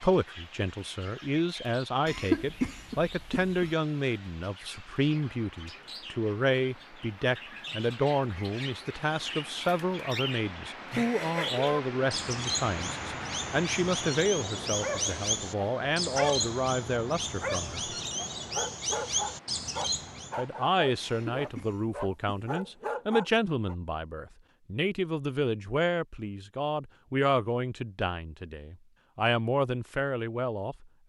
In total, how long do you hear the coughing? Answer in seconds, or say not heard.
3 s.